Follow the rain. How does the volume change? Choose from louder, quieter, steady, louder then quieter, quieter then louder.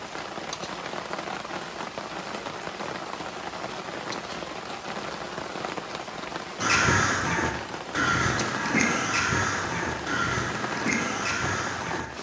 steady.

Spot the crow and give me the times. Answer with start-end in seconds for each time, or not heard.
6.6-12.1.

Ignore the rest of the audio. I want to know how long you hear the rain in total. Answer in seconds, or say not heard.
12 s.